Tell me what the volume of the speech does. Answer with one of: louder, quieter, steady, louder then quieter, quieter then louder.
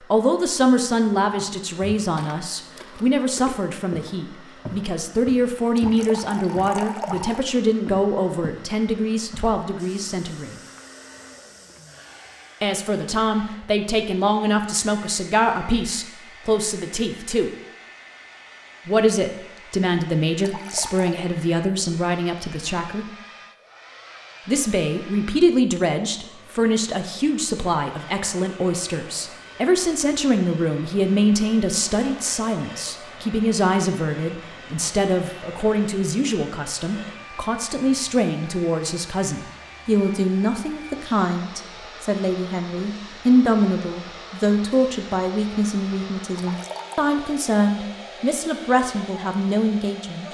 steady.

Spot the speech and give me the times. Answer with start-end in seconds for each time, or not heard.
0.0-10.6, 12.6-17.5, 18.9-23.1, 24.4-50.2.